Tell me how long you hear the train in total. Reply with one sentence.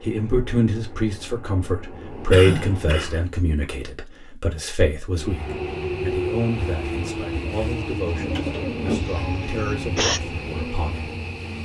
The train can be heard for 10 seconds in total.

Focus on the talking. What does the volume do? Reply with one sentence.
The volume of the talking goes down.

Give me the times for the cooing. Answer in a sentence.
The cooing can be heard from 8.0 to 9.9 s.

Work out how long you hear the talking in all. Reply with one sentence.
You can hear the talking for 11 seconds altogether.